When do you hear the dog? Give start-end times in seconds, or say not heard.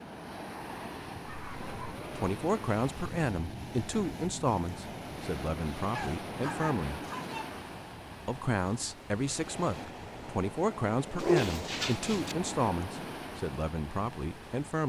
1.2-1.9, 5.9-7.6, 11.2-12.3.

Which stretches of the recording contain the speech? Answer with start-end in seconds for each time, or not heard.
2.1-7.0, 8.2-14.8.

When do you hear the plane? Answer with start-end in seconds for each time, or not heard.
not heard.